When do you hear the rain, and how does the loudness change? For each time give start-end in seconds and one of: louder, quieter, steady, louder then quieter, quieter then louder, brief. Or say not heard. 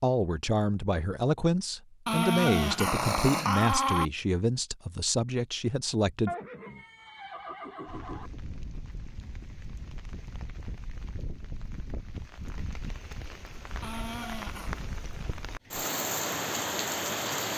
7.8-17.5 louder.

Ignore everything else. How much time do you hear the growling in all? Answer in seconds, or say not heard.
3 s.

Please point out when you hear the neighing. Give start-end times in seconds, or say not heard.
6.2-8.3.